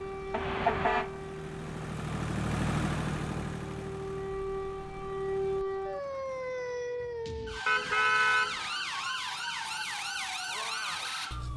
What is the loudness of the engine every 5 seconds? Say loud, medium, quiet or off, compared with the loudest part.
loud, quiet, off.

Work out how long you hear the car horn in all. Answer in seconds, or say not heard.
2 s.